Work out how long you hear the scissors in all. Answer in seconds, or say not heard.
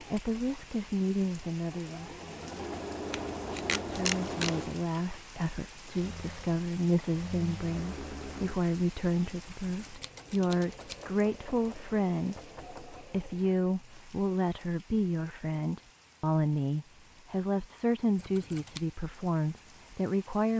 4 s.